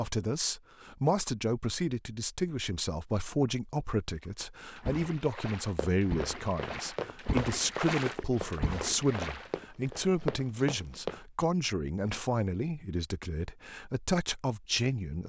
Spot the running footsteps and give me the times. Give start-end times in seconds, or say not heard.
5.7-11.2.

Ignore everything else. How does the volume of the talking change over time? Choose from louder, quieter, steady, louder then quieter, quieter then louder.
steady.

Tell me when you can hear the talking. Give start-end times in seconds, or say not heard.
0.0-15.2.